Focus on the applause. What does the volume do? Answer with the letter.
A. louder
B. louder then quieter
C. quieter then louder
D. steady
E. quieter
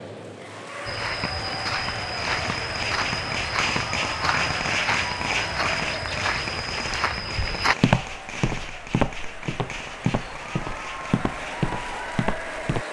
C.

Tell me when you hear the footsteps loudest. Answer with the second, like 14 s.
8 s.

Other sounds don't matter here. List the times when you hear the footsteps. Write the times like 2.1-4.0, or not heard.
0.8-12.8.